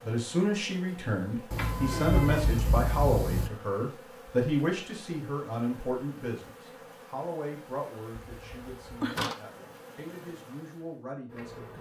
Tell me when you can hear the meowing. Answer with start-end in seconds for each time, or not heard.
1.5-3.5, 8.2-9.3.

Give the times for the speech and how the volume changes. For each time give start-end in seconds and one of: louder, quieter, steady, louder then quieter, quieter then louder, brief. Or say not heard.
0.0-11.7 quieter.